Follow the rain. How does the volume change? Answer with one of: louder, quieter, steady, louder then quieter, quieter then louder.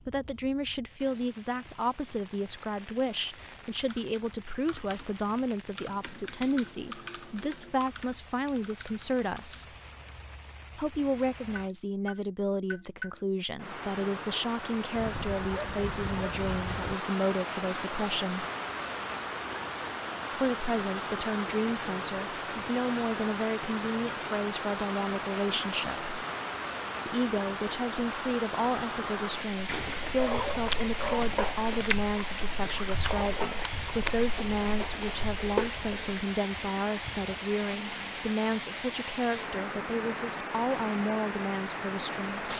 louder.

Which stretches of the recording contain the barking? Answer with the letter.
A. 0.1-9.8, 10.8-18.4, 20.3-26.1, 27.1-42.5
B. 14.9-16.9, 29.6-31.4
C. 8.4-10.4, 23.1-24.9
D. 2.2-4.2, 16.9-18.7
B.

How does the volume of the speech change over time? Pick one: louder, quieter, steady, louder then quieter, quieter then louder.
steady.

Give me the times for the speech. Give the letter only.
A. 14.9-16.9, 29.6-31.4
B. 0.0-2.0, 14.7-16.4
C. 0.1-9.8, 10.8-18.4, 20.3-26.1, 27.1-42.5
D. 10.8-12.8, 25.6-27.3
C.